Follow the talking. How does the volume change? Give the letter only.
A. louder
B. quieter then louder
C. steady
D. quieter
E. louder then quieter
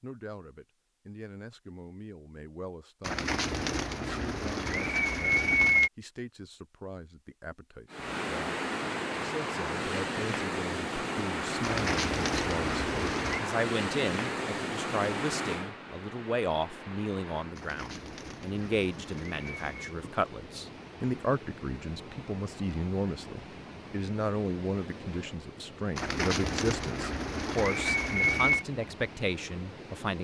A.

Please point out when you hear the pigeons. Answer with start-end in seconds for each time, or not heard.
3.0-5.9, 11.6-13.4, 17.6-19.9, 25.9-28.6.